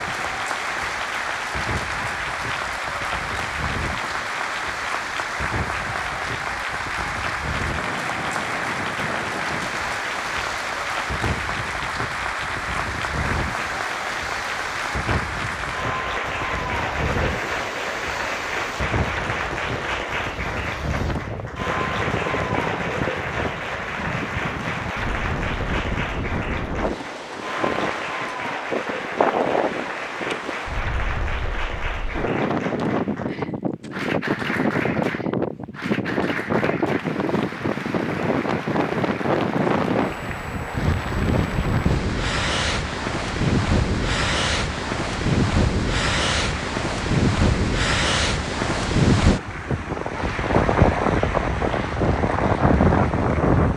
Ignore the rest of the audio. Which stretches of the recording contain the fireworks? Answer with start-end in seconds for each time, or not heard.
not heard.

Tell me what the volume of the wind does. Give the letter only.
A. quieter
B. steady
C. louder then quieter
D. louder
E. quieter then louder
D.